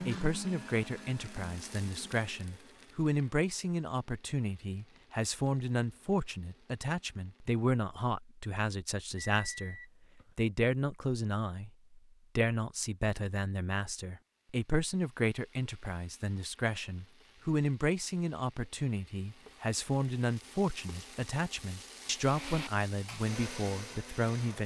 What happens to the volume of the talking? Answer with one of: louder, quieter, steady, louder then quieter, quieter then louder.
steady.